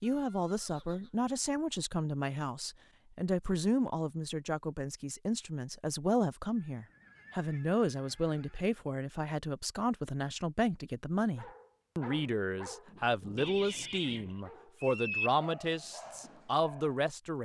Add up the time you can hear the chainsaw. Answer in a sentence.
You can't hear the chainsaw here.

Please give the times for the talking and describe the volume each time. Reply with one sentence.
You can hear the talking from 0.0 to 17.4 s, at a steady volume.